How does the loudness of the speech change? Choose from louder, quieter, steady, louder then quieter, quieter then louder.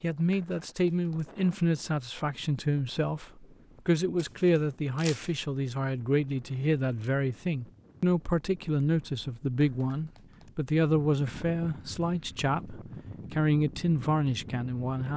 steady.